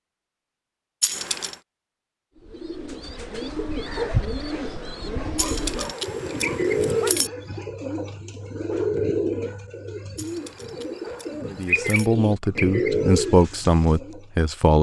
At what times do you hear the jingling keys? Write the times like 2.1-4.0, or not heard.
1.0-1.6, 5.3-7.3, 10.2-12.1.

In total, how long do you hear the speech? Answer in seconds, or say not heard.
3 s.